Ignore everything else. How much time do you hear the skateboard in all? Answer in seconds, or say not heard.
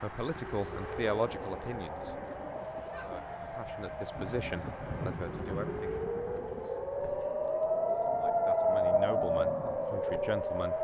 not heard.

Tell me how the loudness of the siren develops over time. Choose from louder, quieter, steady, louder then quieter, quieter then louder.
louder.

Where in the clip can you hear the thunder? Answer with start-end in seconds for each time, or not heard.
4.2-6.7.